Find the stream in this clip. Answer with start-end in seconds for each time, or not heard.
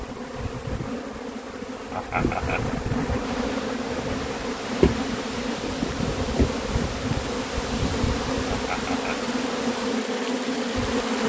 3.2-11.2.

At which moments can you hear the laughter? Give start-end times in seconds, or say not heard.
1.9-2.8, 8.5-9.3.